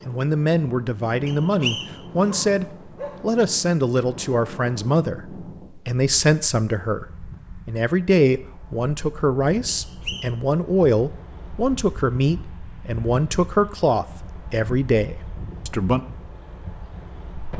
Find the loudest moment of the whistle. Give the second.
2 s.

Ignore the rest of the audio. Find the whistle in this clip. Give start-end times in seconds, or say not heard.
1.2-2.0, 9.8-10.3.